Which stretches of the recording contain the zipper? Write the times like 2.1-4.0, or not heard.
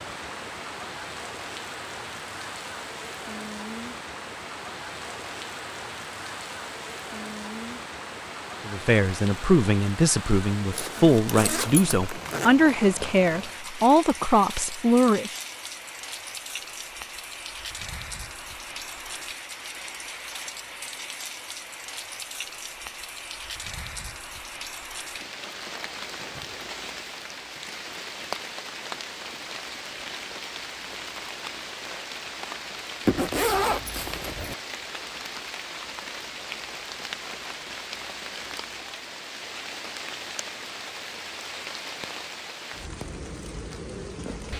10.7-12.6, 33.0-34.5.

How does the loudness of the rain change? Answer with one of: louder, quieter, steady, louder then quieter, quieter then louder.
steady.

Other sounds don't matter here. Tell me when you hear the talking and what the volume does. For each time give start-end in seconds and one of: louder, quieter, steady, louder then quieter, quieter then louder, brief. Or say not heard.
8.7-15.3 steady.